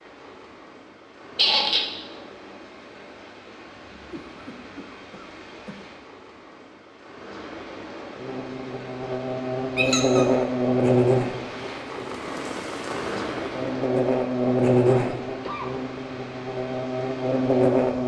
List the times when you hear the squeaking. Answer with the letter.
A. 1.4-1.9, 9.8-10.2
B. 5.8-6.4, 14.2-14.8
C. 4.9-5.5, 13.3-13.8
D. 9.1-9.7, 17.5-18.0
A.